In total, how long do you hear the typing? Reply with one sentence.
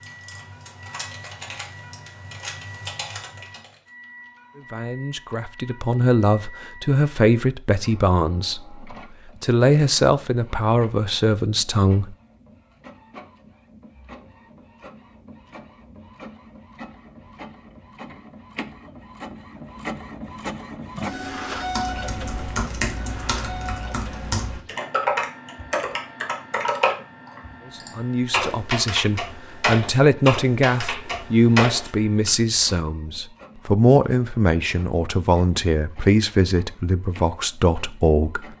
The typing can be heard for 15 seconds in total.